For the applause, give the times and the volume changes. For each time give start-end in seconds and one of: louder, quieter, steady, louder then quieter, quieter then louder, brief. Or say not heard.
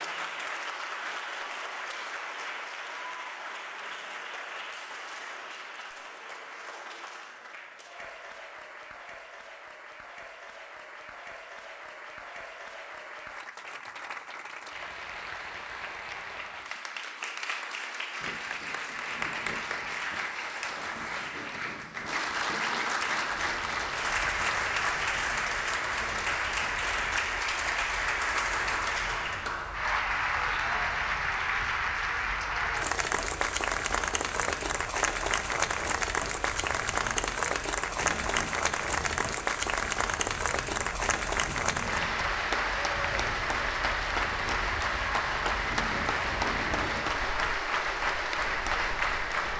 0.0-49.5 louder.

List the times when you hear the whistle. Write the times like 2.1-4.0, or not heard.
not heard.